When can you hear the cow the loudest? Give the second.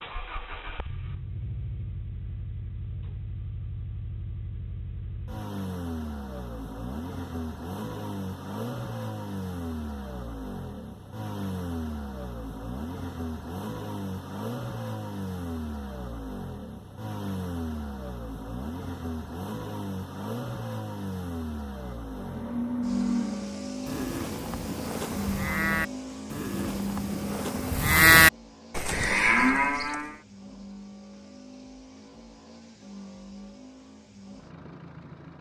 28 s.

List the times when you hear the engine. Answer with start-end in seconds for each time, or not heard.
0.0-35.3.